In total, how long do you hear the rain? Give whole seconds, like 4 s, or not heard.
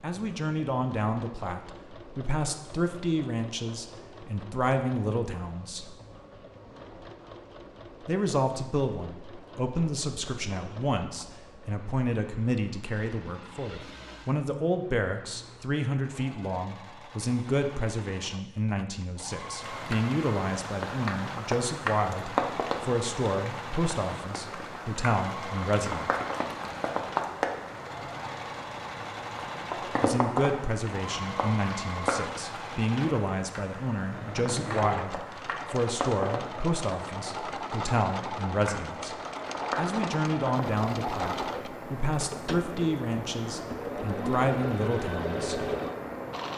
27 s.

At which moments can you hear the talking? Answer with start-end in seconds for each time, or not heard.
0.0-5.8, 8.1-26.1, 30.0-39.1, 39.8-45.6.